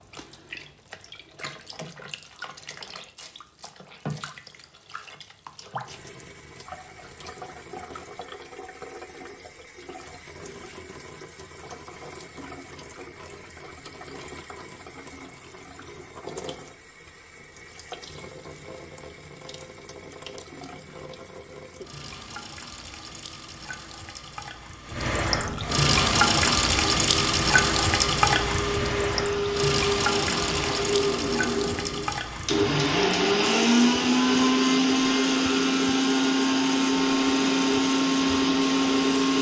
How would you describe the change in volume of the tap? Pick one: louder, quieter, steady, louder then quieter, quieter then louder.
louder then quieter.